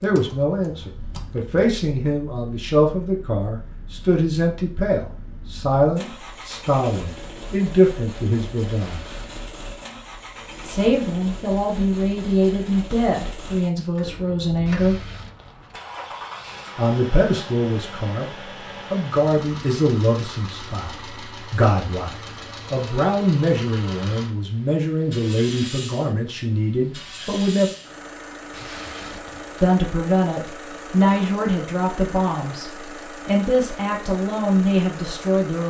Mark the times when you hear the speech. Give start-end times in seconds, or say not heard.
0.0-9.0, 10.7-15.1, 16.8-18.2, 18.9-22.1, 22.7-27.7, 29.6-35.6.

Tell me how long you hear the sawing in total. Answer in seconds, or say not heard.
not heard.